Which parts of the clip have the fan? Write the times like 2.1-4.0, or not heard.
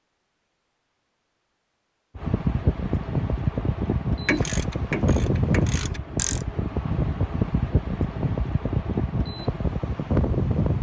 2.1-10.7.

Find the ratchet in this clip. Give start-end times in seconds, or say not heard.
4.2-6.5.